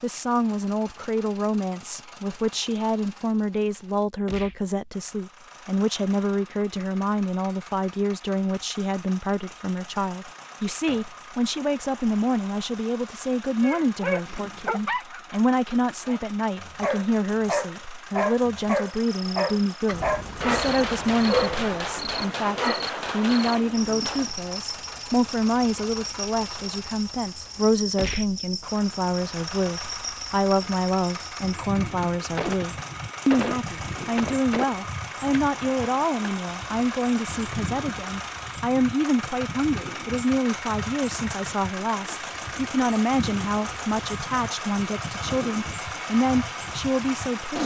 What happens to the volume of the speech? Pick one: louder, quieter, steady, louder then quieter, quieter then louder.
steady.